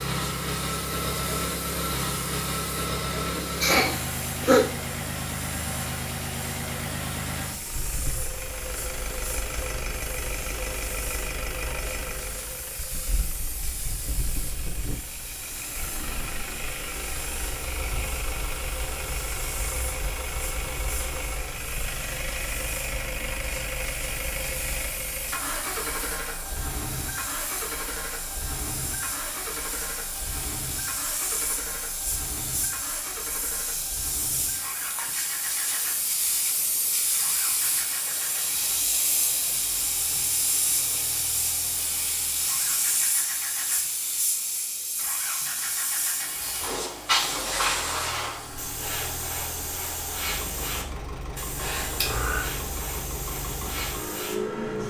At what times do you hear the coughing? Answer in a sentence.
The coughing can be heard from 3.4 to 4.7 s.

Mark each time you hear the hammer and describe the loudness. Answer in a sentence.
You can't hear the hammer here.